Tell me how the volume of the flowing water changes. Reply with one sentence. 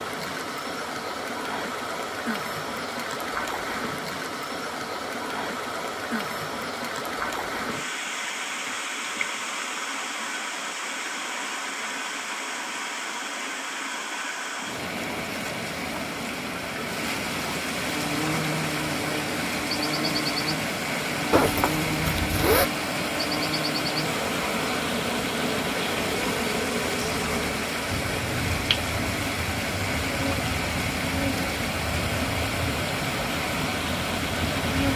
The volume of the flowing water stays about the same.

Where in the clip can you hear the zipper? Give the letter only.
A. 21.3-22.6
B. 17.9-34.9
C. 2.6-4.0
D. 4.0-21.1
A.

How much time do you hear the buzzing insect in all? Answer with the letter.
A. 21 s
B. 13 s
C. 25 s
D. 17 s
D.